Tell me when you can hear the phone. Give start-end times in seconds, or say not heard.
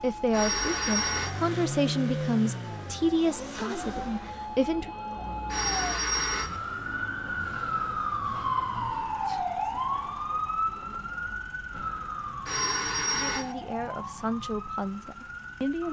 0.3-1.4, 5.5-6.6, 12.4-13.6.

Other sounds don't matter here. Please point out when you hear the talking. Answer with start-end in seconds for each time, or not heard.
0.0-4.9, 13.1-15.8.